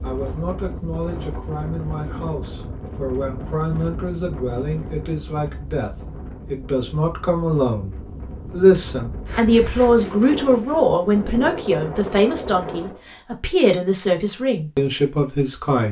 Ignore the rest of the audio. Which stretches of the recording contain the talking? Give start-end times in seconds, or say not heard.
0.0-15.8.